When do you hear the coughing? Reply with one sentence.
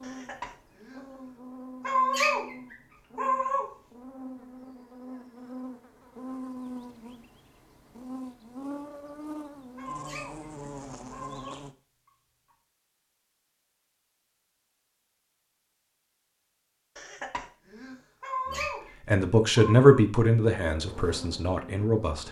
You can hear the coughing from 0.0 to 1.4 s and from 16.9 to 18.0 s.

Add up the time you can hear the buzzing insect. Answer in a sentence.
The buzzing insect can be heard for 13 seconds in total.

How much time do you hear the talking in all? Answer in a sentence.
You can hear the talking for 4 seconds altogether.